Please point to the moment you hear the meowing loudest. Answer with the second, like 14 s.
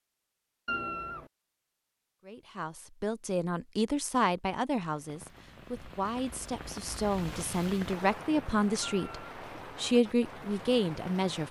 1 s.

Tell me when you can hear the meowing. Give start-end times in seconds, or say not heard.
0.7-1.3, 8.8-9.3.